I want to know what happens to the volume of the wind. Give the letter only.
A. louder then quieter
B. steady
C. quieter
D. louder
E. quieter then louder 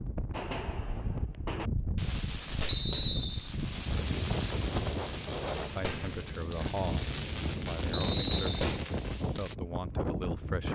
B.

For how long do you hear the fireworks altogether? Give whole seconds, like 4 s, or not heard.
9 s.